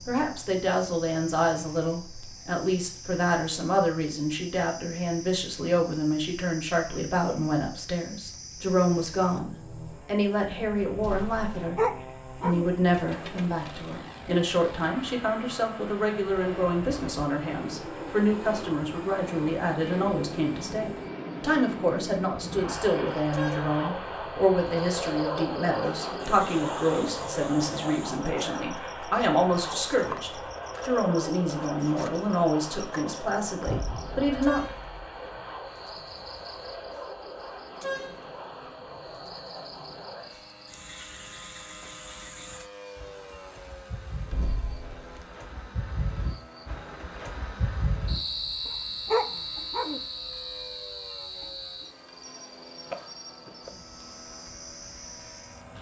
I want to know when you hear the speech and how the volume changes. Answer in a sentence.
You can hear the speech from 0.1 to 34.6 s, at a steady volume.